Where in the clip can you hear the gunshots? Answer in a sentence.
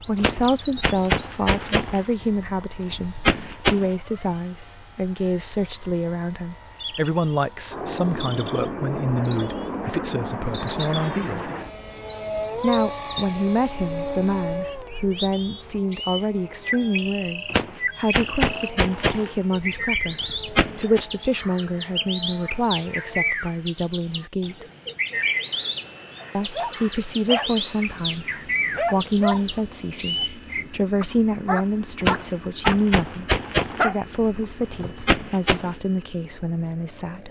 The gunshots can be heard from 0.1 to 4.0 s, from 17.5 to 21.1 s and from 32.0 to 35.8 s.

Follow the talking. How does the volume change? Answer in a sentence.
The loudness of the talking stays about the same.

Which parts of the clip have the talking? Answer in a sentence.
You can hear the talking from 0.0 to 11.5 s, from 12.6 to 24.6 s and from 26.3 to 37.2 s.